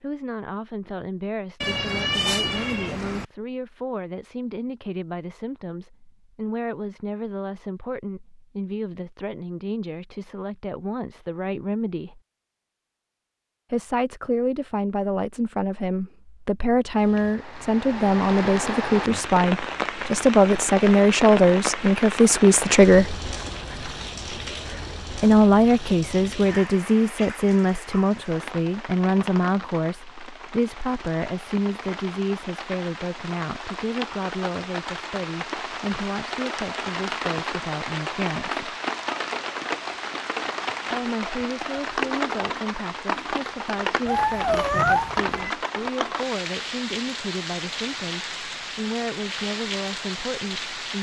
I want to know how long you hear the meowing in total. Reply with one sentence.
The meowing can be heard for 3 seconds in total.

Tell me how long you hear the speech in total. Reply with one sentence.
The speech can be heard for 45 seconds in total.